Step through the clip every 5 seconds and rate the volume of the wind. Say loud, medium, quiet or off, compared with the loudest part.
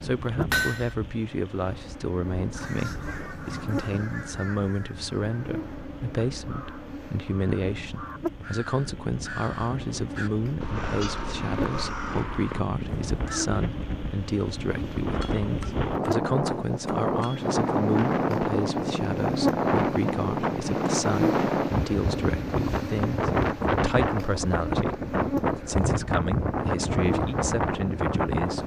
quiet, quiet, medium, loud, loud, loud.